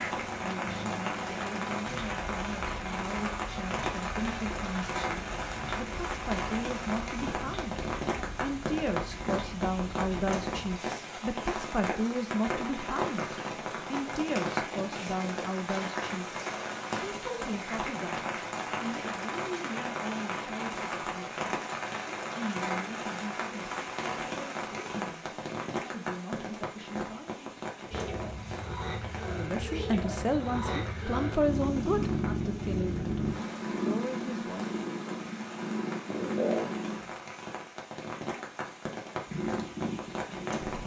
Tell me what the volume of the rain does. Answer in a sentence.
The loudness of the rain goes down.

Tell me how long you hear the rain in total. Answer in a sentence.
You can hear the rain for 41 seconds altogether.